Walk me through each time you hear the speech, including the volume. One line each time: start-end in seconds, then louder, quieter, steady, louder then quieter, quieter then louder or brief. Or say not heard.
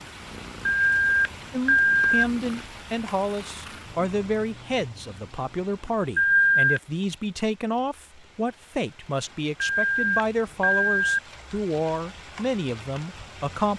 1.5-13.7 steady.